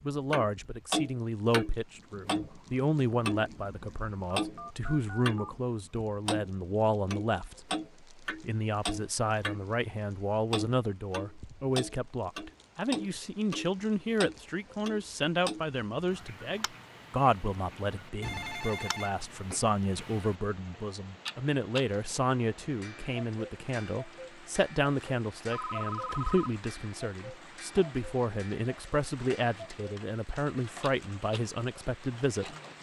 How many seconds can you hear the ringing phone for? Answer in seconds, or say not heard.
4 s.